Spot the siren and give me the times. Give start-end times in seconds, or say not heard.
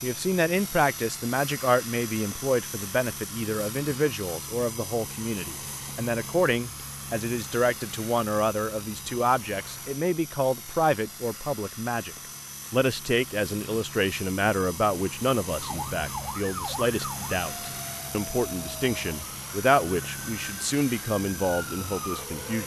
15.6-22.6.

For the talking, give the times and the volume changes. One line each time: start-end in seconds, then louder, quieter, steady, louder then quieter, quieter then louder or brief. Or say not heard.
0.0-22.6 steady.